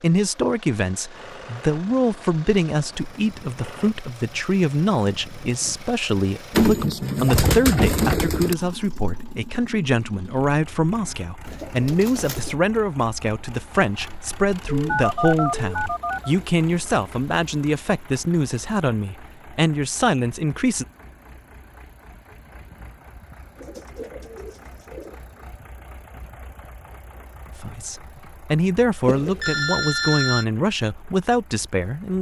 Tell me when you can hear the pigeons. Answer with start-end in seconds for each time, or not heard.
6.5-8.6, 11.4-12.6, 23.6-25.2.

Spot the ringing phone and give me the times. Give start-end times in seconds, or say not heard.
1.1-4.0, 14.7-16.4, 29.1-30.4.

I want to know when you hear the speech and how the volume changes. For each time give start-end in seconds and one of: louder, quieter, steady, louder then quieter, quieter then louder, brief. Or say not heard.
0.0-20.9 steady
27.6-32.1 steady.